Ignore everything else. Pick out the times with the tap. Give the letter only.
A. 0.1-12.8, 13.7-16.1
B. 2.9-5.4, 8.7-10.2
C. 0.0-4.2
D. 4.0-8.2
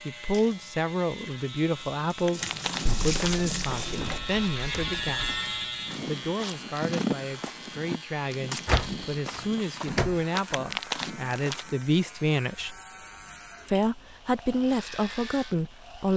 C.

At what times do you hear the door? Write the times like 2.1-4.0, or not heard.
2.9-5.4, 8.7-10.2.